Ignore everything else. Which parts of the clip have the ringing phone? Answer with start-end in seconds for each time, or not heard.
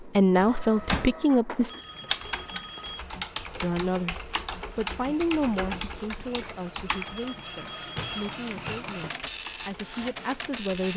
1.7-3.0, 6.9-8.2.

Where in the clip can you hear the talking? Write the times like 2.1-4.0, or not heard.
0.0-1.8, 3.6-10.9.